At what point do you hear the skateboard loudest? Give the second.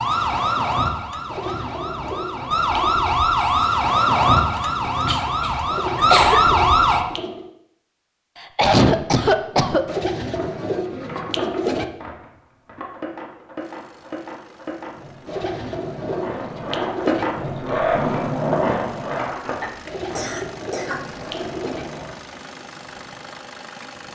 18 s.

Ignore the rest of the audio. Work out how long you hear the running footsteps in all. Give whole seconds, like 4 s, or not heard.
not heard.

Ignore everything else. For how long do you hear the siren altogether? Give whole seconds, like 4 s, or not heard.
7 s.